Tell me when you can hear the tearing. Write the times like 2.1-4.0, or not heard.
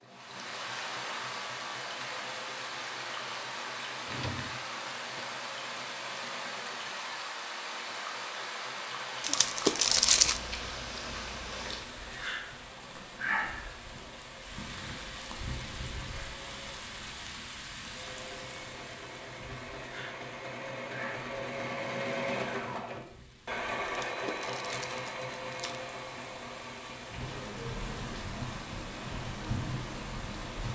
9.2-10.4, 23.9-25.8.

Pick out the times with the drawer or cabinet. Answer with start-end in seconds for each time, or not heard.
4.0-5.2.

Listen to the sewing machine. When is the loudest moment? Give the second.
22 s.